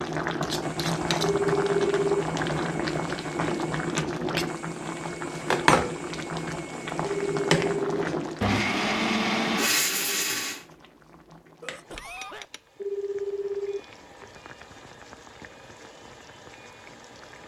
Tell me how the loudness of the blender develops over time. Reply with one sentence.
The volume of the blender goes up.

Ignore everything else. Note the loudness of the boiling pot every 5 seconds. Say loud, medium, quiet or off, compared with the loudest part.
loud, loud, quiet, quiet.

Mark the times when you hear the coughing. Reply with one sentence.
You can hear the coughing from 11.6 to 12.5 s.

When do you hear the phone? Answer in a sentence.
The phone can be heard from 1.2 to 2.2 s, from 7.0 to 8.1 s and from 12.8 to 14.2 s.